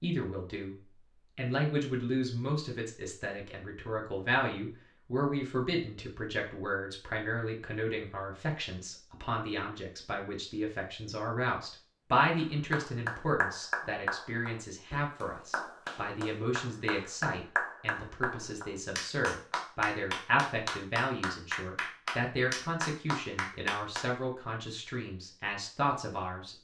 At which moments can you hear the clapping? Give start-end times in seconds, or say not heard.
12.3-24.1.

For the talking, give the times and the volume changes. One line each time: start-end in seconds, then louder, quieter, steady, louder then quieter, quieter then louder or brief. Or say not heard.
0.0-0.8 brief
1.4-26.5 steady.